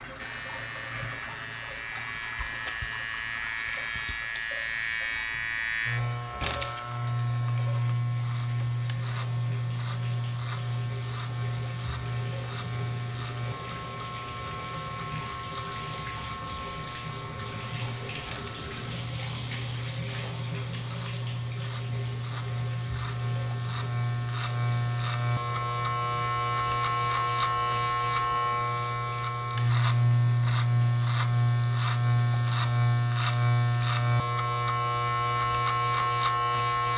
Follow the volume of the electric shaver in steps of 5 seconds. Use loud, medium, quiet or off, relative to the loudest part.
medium, medium, medium, quiet, medium, loud, loud, loud.